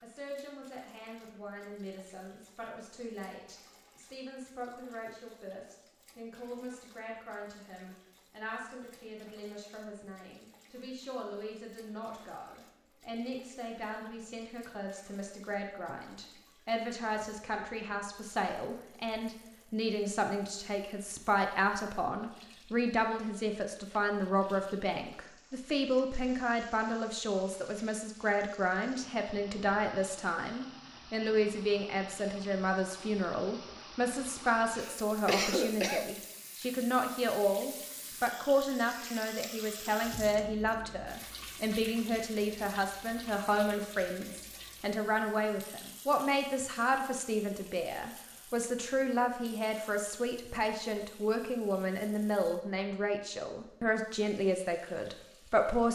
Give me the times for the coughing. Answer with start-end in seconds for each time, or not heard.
34.7-36.0.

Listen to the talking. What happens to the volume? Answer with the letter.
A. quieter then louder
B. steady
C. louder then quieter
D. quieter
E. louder
E.